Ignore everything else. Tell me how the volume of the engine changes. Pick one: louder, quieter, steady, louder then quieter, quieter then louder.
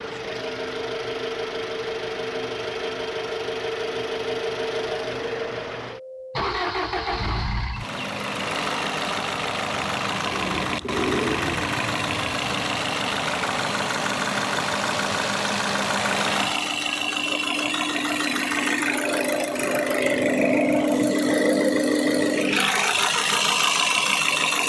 louder.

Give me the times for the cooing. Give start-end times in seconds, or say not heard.
10.3-11.7.